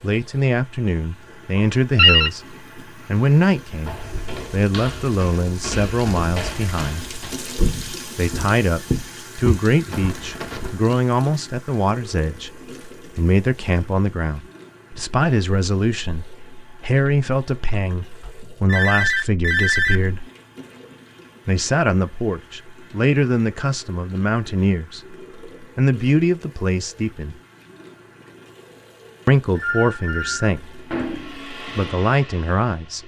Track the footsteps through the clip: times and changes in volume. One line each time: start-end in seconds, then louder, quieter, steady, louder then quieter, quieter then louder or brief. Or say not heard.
3.9-10.8 louder.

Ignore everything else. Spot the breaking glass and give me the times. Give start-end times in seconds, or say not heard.
not heard.